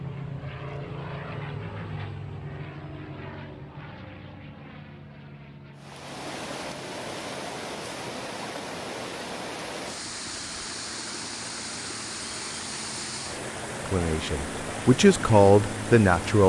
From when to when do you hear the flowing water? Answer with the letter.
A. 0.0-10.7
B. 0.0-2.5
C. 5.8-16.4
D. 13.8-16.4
C.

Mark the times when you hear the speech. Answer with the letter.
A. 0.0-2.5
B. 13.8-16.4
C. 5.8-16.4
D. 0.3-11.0
B.